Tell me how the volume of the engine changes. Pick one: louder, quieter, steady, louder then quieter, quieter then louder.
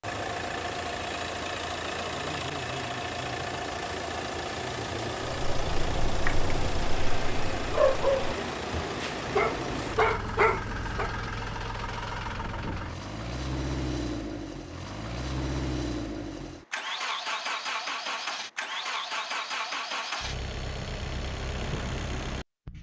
steady.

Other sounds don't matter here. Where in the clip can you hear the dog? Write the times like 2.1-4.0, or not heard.
5.5-11.1.